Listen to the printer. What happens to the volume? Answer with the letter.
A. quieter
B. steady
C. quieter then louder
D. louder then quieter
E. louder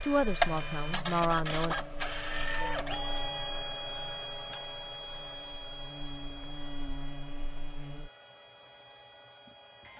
A.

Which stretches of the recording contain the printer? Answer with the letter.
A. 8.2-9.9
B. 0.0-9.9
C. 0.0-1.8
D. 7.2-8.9
B.